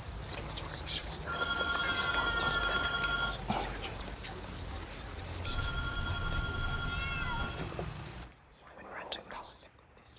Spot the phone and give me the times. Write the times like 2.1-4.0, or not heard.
1.2-3.4, 5.4-7.7.